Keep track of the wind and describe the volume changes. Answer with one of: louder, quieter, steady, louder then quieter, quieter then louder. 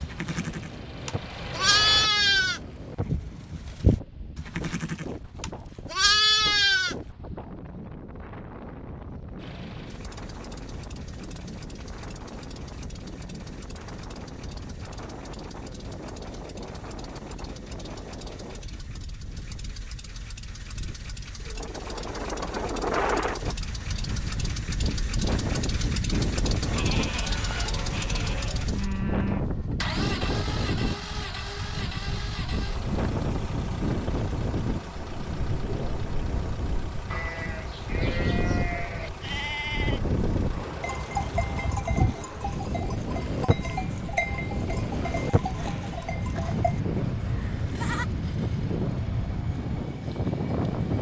louder.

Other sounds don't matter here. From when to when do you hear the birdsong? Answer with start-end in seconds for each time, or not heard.
not heard.